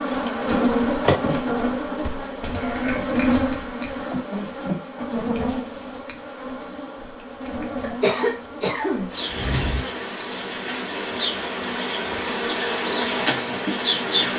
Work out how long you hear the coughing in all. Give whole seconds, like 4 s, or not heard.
2 s.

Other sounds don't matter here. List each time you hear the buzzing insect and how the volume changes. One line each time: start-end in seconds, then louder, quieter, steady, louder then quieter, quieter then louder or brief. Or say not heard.
0.0-14.3 quieter then louder.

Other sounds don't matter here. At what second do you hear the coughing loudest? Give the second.
8 s.